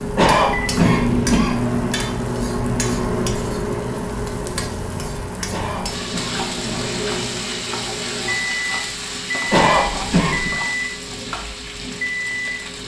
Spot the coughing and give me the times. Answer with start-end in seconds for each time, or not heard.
0.1-1.6, 5.5-6.9, 9.4-10.6.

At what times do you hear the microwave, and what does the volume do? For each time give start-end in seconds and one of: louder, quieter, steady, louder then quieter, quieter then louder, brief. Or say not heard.
0.0-12.8 quieter.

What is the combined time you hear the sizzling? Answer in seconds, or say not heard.
13 s.